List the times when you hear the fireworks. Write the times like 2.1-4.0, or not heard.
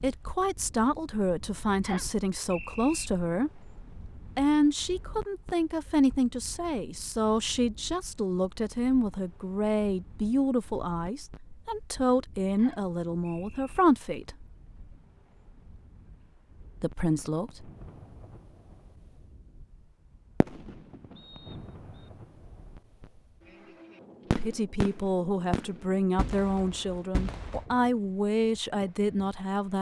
17.2-18.8, 20.4-23.2, 24.3-27.6.